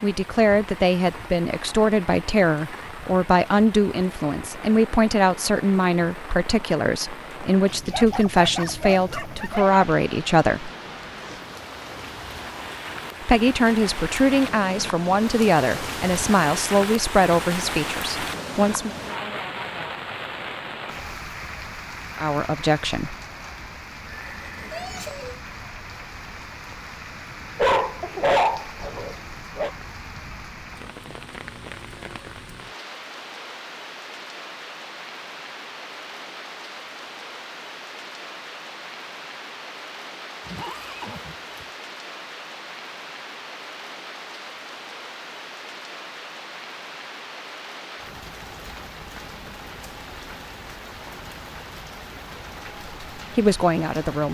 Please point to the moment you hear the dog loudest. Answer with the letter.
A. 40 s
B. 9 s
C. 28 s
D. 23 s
C.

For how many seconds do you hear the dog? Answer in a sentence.
The dog can be heard for 4 seconds in total.